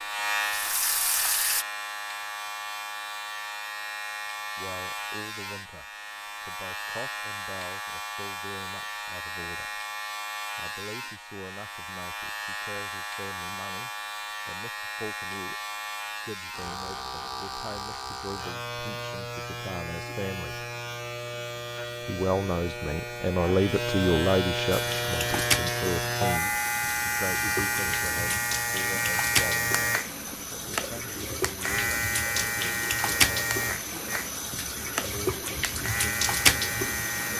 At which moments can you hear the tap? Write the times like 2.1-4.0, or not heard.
0.3-1.6, 24.7-37.3.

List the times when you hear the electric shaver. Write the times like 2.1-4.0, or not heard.
0.0-37.3.